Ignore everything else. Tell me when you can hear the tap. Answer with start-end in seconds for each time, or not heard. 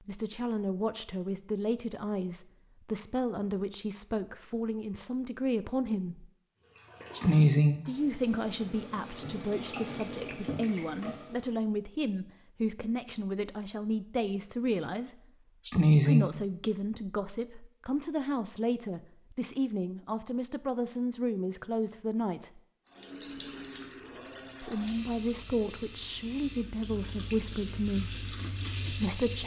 6.6-11.7, 22.9-29.4.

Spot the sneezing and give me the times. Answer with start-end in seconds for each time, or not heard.
7.1-7.8, 15.7-16.3.